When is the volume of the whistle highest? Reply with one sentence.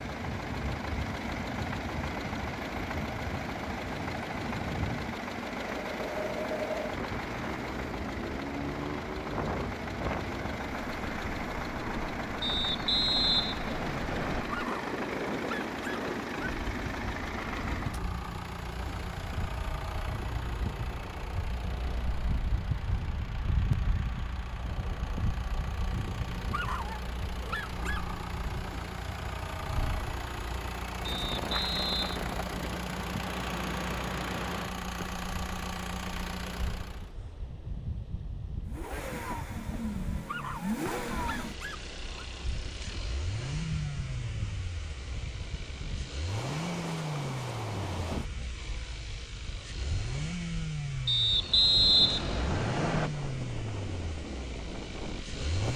The loudest moment of the whistle is at 52 seconds.